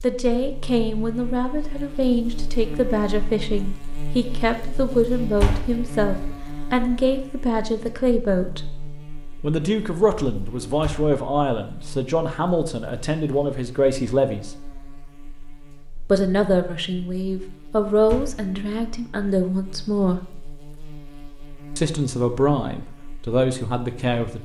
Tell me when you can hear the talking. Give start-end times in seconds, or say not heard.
0.0-8.6, 9.4-14.5, 16.1-20.3, 21.8-24.4.